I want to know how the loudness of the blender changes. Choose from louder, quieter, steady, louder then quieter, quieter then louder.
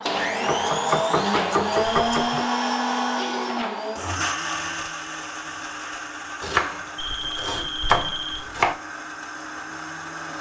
quieter.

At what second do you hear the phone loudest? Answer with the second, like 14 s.
8 s.